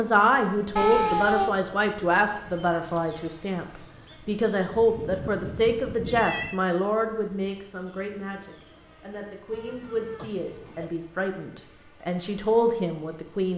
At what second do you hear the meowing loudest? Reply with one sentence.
The volume of the meowing peaks at 1 second.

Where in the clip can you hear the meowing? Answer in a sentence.
You can hear the meowing from 0.8 to 1.6 s, from 4.7 to 6.6 s and from 9.5 to 10.9 s.